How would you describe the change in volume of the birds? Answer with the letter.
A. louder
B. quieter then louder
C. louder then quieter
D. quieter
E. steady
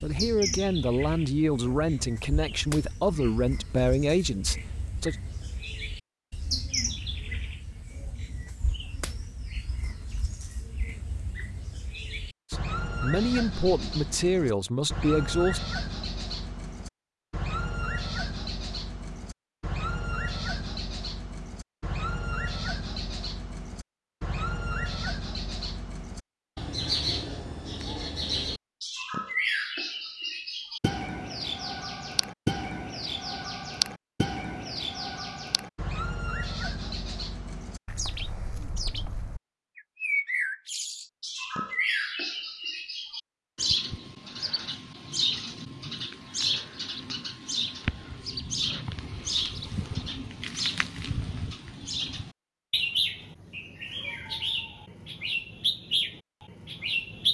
A.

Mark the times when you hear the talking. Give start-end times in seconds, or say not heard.
0.0-5.2, 12.5-15.6.